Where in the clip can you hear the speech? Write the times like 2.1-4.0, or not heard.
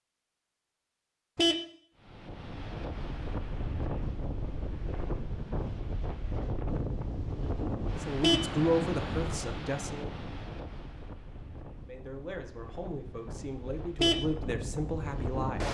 8.0-10.1, 11.8-15.6.